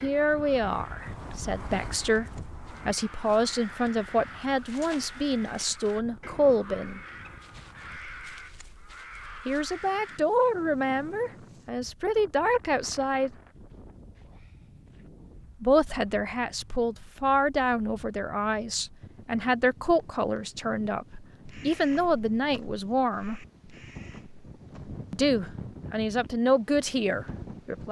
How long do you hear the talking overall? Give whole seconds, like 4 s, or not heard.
21 s.